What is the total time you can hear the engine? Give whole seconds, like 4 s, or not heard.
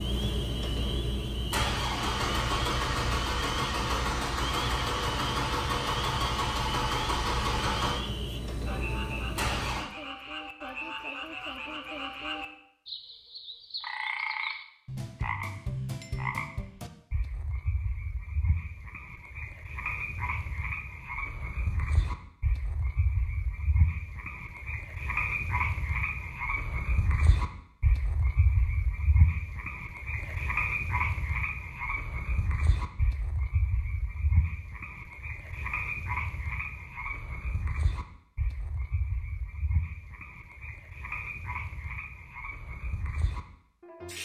10 s.